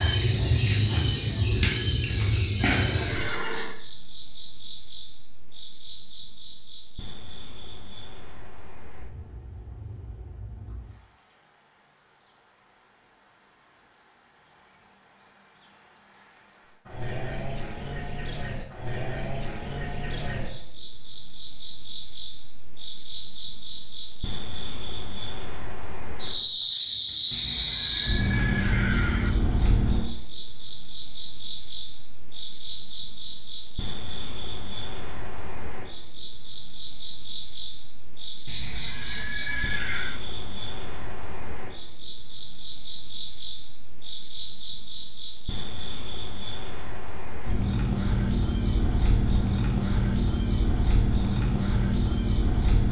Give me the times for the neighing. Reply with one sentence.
The neighing can be heard from 2.8 to 3.8 s, from 27.3 to 29.3 s and from 38.5 to 40.2 s.